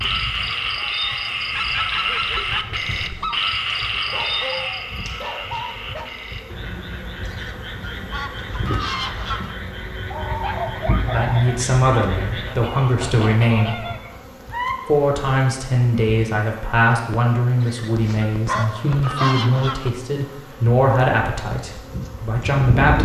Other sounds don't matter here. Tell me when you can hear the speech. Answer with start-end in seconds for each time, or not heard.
11.1-13.8, 14.8-22.9.